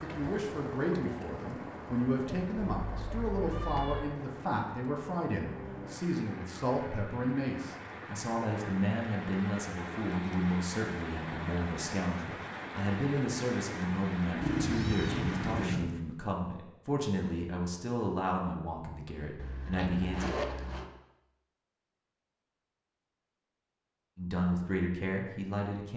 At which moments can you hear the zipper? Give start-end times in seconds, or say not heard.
3.5-4.0, 19.4-20.9.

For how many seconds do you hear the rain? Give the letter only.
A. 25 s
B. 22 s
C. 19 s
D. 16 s
D.